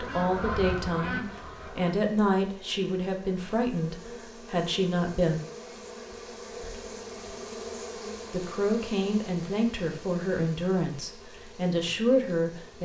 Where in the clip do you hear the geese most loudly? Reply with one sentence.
The loudest moment of the geese is at 1 second.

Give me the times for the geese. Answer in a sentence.
The geese can be heard from 0.0 to 1.9 s.